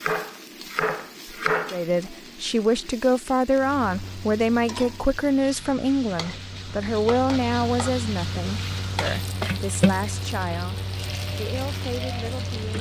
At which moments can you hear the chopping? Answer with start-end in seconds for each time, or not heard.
0.0-1.8.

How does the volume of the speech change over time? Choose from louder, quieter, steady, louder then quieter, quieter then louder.
quieter.